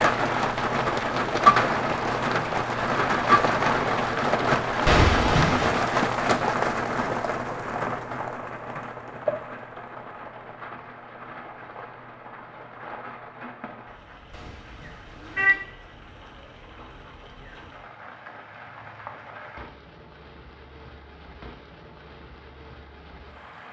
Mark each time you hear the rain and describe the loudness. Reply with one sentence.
The rain can be heard from 0.0 to 23.6 s, getting quieter.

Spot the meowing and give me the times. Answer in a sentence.
The meowing can be heard from 4.8 to 5.7 s and from 14.3 to 15.6 s.